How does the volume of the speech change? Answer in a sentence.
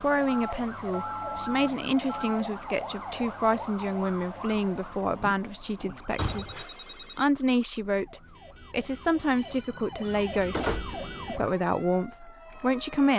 The loudness of the speech stays about the same.